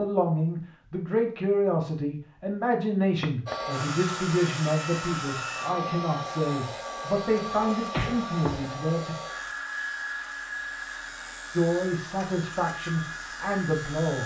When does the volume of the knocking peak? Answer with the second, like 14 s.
8 s.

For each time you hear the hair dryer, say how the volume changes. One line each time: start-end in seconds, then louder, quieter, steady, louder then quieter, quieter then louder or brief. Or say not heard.
3.5-14.2 quieter.